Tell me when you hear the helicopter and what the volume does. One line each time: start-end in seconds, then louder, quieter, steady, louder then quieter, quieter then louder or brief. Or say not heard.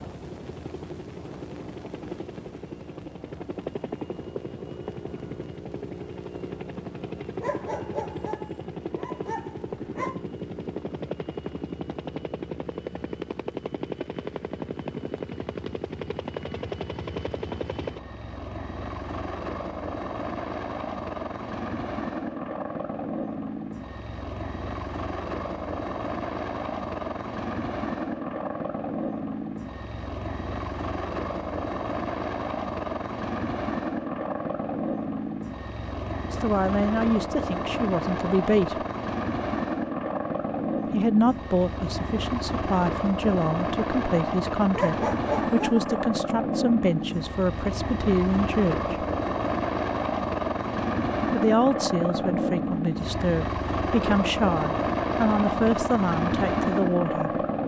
0.0-57.6 louder.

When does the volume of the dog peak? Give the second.
45 s.